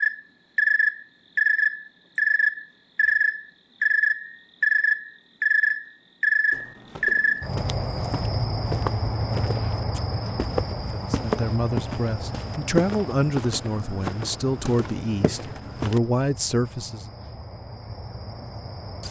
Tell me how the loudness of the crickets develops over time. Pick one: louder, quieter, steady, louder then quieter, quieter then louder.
quieter.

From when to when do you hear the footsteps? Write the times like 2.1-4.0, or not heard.
6.5-16.0.